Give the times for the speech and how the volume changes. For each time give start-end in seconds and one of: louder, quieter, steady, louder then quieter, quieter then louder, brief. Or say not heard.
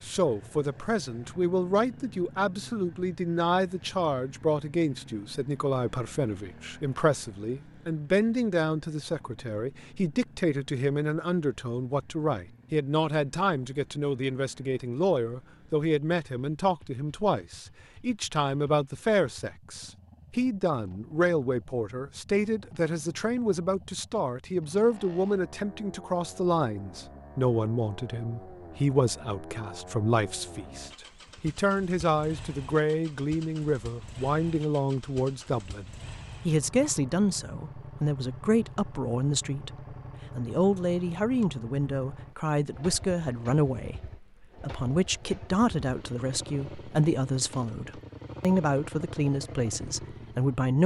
0.0-35.9 steady
36.5-50.8 steady.